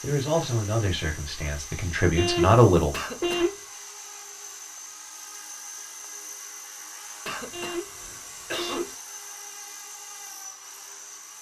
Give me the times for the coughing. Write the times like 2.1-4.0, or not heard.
2.9-3.5, 7.2-8.9.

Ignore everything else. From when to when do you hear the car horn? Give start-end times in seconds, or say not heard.
2.1-3.8, 7.5-9.1.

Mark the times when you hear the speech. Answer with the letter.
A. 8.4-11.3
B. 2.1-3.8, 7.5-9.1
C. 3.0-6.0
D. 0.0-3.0
D.